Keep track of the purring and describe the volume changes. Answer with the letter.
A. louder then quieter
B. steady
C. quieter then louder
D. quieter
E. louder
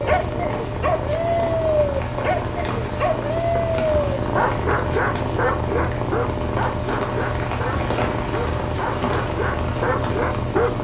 B.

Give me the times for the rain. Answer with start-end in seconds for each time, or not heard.
0.1-10.8.